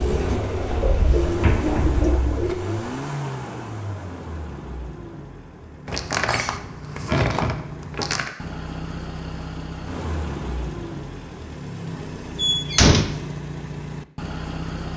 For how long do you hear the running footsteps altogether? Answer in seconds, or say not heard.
not heard.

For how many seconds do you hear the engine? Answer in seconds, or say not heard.
15 s.